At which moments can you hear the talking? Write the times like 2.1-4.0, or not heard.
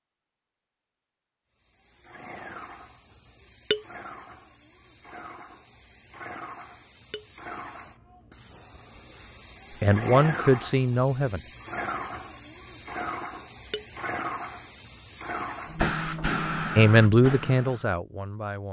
9.8-11.4, 16.8-18.6.